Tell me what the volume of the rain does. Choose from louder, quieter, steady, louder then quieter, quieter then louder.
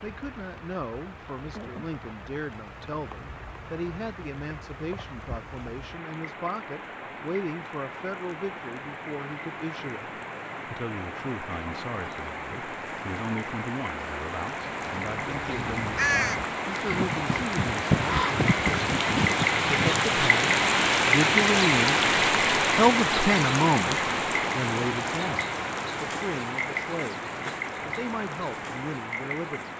louder then quieter.